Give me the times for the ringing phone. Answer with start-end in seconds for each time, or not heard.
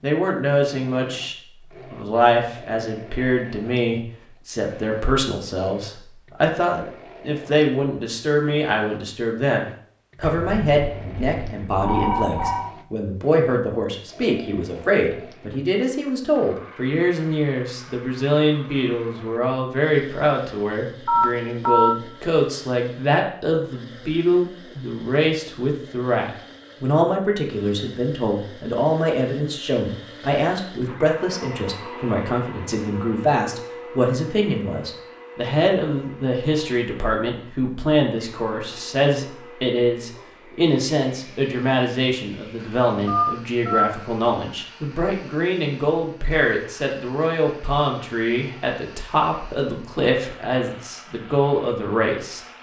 10.2-12.7, 21.1-21.9, 43.0-43.9.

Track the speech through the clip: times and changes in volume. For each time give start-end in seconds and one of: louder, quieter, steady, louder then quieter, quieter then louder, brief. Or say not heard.
0.0-52.4 steady.